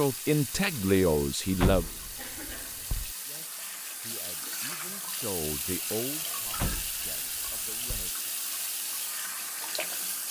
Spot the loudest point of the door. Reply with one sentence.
The volume of the door peaks at 2 seconds.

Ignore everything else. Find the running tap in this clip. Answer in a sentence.
You can hear the running tap from 0.0 to 10.2 s.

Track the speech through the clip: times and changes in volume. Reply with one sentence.
The speech can be heard briefly from 0.0 to 1.9 s; and from 3.2 to 8.3 s, getting louder then quieter.